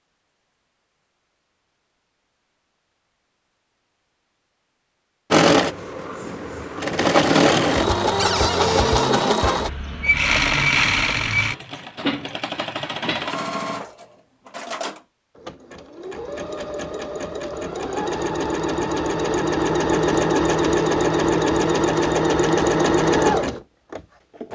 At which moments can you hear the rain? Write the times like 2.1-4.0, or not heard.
not heard.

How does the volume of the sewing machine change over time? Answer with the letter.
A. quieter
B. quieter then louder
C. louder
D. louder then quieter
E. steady
B.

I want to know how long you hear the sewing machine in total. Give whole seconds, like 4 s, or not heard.
19 s.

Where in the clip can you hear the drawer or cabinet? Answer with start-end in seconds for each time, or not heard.
8.2-9.3.